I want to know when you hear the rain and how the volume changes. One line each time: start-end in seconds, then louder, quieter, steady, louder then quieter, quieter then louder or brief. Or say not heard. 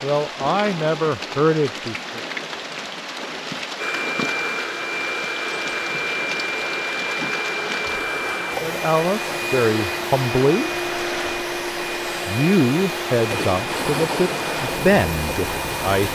0.0-16.1 steady.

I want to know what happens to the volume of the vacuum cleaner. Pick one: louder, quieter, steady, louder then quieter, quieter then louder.
steady.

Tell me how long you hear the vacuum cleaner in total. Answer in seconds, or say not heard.
12 s.